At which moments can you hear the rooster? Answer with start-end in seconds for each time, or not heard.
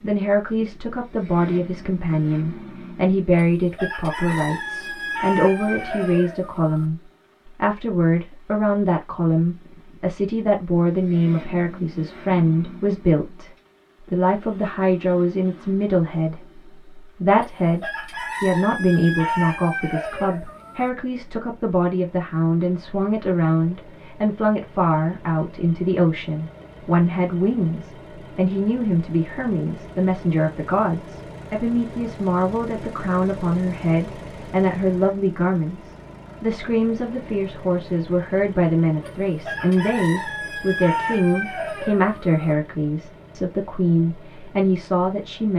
3.5-6.8, 17.4-20.9, 39.0-42.5.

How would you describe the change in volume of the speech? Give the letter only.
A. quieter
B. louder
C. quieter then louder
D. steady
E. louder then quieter
D.